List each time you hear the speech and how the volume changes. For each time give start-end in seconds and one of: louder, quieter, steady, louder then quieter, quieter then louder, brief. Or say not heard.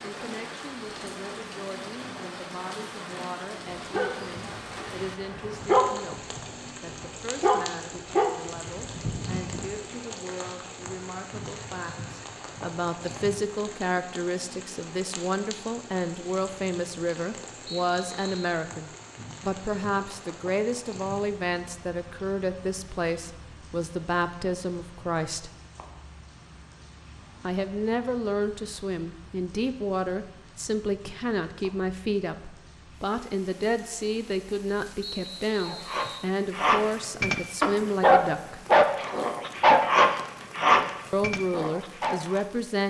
0.0-25.5 louder
27.4-38.6 steady
41.1-42.8 brief.